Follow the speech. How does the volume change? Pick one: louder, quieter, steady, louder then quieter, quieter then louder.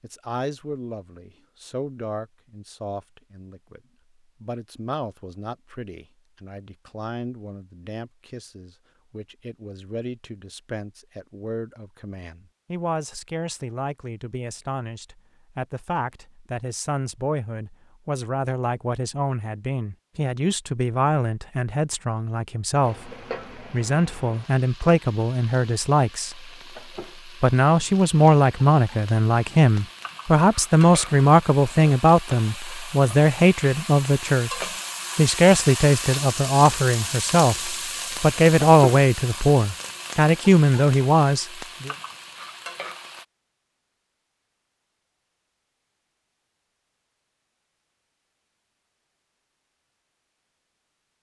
louder.